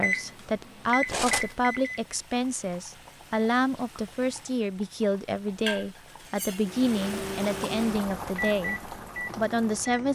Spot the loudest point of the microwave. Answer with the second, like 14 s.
1 s.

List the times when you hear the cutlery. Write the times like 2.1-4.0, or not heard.
1.1-1.6, 6.2-6.7.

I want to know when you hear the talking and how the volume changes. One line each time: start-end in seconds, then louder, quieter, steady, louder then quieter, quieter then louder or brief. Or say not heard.
0.0-10.1 steady.